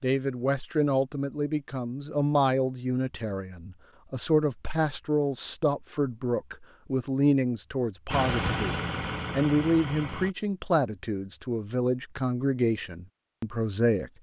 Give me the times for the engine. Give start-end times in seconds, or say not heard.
8.1-10.3.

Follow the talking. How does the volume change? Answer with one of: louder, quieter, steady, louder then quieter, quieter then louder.
steady.